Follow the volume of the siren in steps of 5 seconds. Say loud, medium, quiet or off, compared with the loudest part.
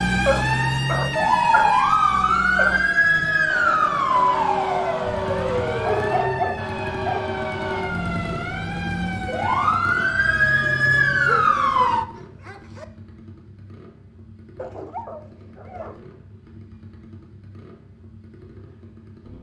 loud, medium, loud, off.